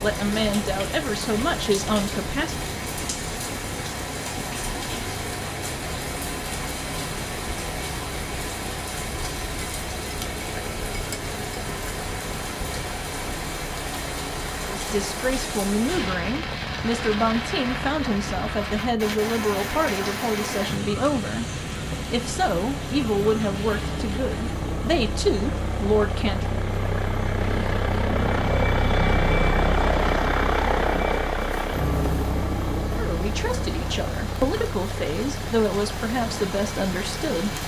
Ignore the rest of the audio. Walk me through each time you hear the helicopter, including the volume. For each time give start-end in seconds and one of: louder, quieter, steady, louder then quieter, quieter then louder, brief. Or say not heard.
0.0-37.6 louder.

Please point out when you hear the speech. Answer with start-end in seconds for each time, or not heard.
0.0-2.6, 14.7-26.4, 33.0-37.5.